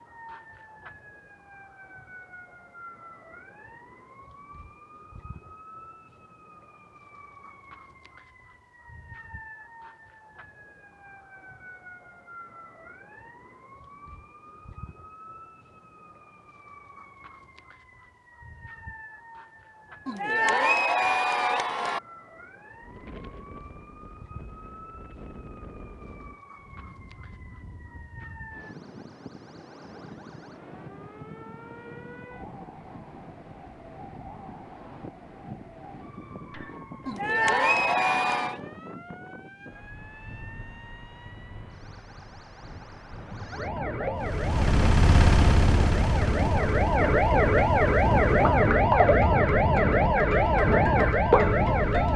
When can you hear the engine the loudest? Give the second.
45 s.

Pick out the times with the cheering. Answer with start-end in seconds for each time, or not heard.
20.1-22.0, 37.0-38.6.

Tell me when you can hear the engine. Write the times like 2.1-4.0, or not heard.
44.1-48.6.